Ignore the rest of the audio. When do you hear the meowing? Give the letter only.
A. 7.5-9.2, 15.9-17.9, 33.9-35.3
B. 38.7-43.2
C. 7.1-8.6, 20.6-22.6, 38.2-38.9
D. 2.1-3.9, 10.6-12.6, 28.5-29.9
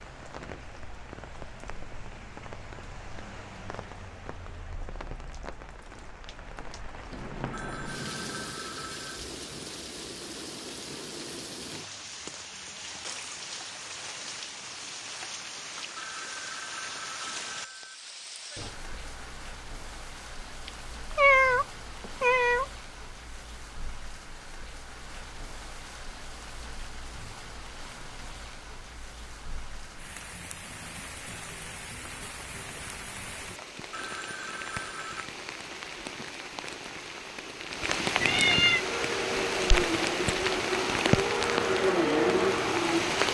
C.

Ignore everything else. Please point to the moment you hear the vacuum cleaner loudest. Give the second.
42 s.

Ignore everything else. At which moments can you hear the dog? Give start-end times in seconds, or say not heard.
not heard.